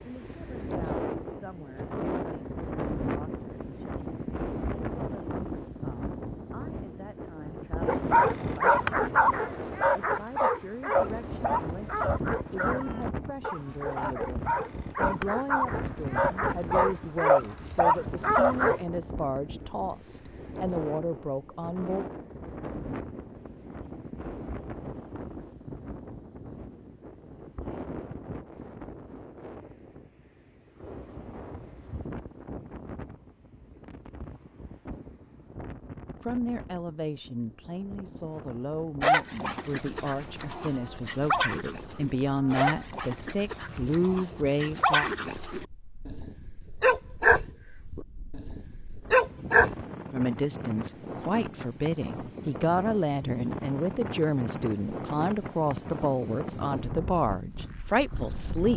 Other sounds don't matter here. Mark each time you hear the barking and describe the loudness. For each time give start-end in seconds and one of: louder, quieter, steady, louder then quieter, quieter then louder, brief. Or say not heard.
7.8-18.8 quieter then louder
39.0-49.8 louder.